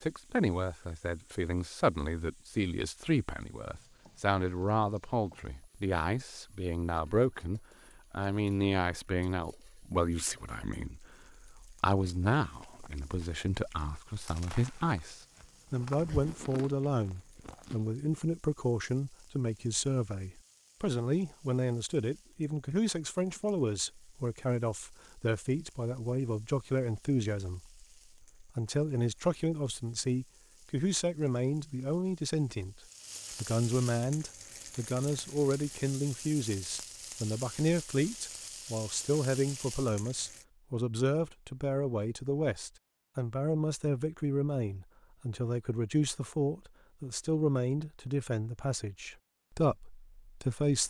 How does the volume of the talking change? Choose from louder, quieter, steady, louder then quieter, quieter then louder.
steady.